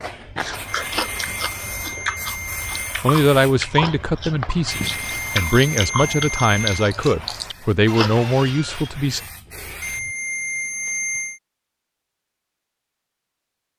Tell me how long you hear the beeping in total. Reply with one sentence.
You can hear the beeping for 6 seconds altogether.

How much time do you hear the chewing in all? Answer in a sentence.
The chewing can be heard for 8 seconds in total.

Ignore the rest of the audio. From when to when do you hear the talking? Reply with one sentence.
You can hear the talking from 3.0 to 9.2 s.